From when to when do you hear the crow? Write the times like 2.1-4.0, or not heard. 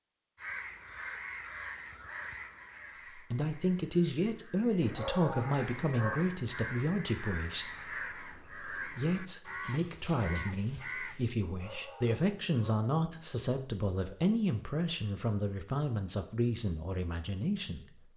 0.3-11.3.